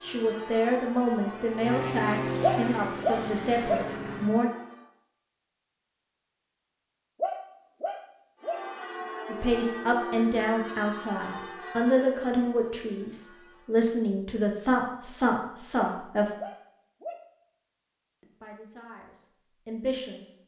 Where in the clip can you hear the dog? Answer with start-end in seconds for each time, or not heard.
2.4-3.9, 7.2-8.6, 15.8-17.2.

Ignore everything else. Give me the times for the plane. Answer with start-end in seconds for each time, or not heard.
0.0-4.3.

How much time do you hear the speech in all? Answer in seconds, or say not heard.
14 s.